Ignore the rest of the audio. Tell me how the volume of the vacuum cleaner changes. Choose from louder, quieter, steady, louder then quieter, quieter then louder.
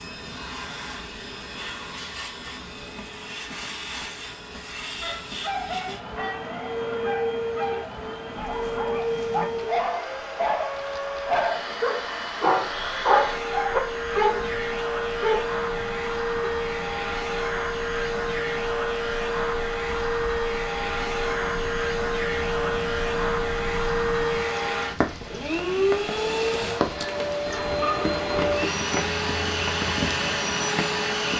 louder.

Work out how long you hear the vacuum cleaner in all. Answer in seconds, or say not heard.
31 s.